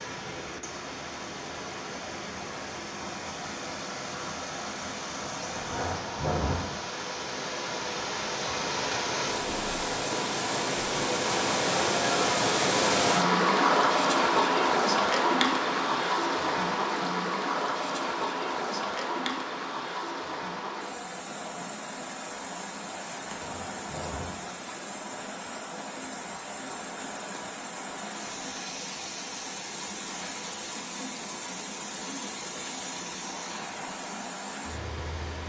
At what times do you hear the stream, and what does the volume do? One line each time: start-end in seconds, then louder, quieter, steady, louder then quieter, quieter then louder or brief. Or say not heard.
0.0-35.4 louder then quieter.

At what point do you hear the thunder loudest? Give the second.
6 s.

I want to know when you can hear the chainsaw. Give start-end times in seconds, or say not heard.
not heard.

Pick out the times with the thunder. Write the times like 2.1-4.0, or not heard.
5.5-6.8, 23.3-24.4.